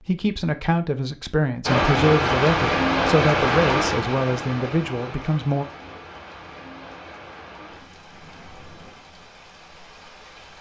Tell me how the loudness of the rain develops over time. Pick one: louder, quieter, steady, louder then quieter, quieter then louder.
quieter.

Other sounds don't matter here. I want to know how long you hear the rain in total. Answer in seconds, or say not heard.
9 s.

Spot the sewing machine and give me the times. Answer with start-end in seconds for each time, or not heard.
not heard.